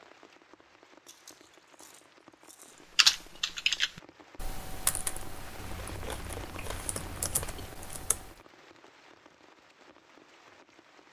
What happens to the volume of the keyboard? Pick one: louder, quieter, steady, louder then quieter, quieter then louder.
quieter then louder.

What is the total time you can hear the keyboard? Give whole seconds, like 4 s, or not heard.
5 s.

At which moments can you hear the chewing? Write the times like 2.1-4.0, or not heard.
1.1-2.9, 5.5-7.7.